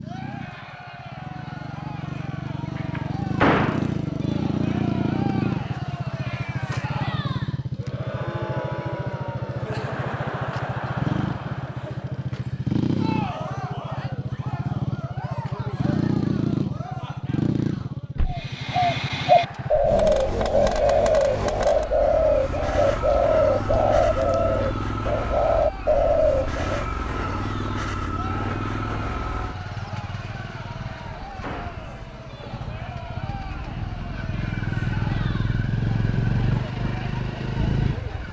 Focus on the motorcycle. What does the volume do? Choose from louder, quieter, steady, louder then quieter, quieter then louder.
steady.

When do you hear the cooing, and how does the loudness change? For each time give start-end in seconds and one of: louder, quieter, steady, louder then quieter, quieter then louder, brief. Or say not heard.
18.2-26.9 steady.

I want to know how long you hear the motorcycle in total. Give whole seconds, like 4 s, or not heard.
38 s.